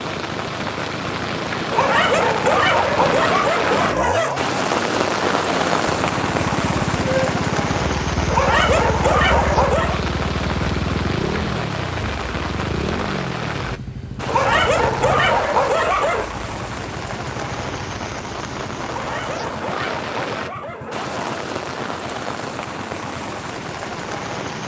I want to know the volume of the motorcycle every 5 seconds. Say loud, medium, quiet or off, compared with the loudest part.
medium, loud, loud, medium, quiet.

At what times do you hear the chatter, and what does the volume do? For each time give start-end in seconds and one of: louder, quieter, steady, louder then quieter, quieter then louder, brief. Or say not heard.
not heard.